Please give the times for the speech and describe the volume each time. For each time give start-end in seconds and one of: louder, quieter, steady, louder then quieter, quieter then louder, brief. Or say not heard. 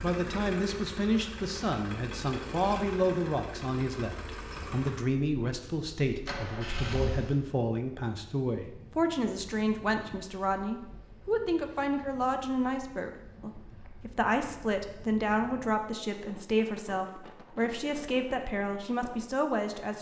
0.0-19.9 steady.